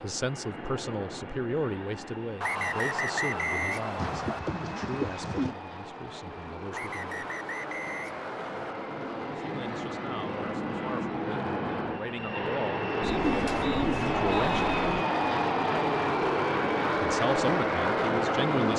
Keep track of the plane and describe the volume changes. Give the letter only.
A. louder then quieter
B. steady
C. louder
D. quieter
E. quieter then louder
C.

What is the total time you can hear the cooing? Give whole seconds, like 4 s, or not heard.
4 s.